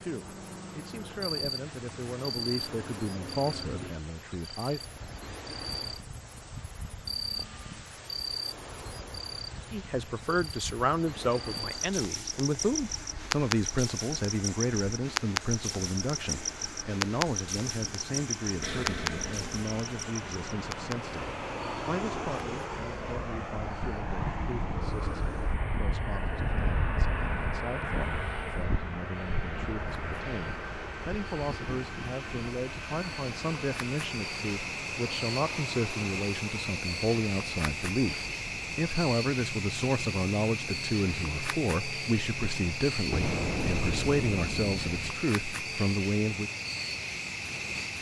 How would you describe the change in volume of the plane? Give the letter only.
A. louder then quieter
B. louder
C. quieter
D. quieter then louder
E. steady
A.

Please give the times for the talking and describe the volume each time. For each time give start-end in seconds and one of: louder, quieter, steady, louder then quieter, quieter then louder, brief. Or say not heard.
0.0-4.8 louder then quieter
9.7-46.5 quieter then louder.